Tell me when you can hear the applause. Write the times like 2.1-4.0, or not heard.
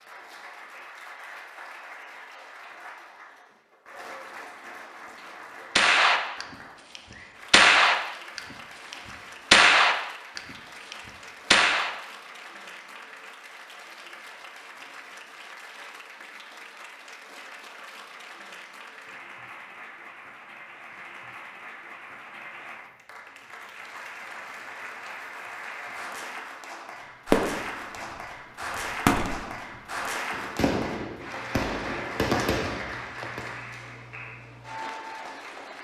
0.0-35.8.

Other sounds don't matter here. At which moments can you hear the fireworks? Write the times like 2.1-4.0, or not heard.
5.8-11.9, 27.3-33.5.